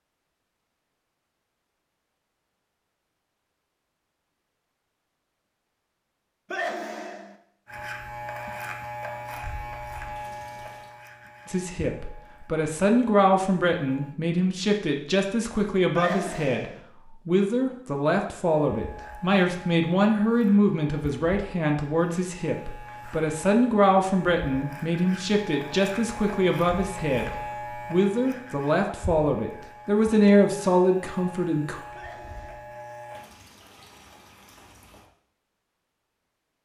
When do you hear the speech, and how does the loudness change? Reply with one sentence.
You can hear the speech from 11.4 to 31.8 s, at a steady volume.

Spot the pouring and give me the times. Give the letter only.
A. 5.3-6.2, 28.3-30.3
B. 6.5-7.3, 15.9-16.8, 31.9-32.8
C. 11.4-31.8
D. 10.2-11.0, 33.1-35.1
D.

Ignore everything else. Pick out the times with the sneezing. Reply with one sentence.
The sneezing can be heard from 6.5 to 7.3 s, from 15.9 to 16.8 s and from 31.9 to 32.8 s.